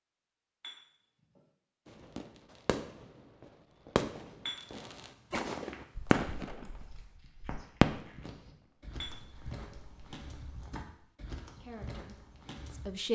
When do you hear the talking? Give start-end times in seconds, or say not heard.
11.6-13.1.